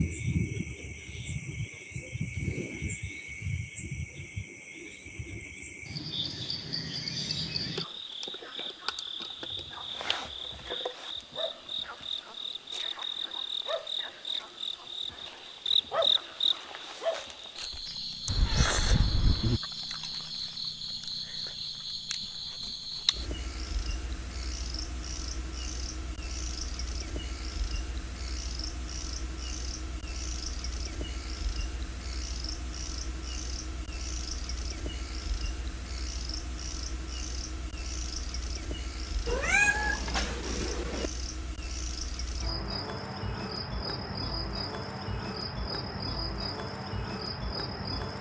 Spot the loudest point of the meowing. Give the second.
40 s.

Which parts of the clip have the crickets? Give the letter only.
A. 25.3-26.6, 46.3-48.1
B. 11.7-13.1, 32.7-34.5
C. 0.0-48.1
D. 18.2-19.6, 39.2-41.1
C.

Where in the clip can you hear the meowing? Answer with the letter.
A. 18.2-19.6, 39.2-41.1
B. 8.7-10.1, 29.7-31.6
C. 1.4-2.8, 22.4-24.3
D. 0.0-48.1
A.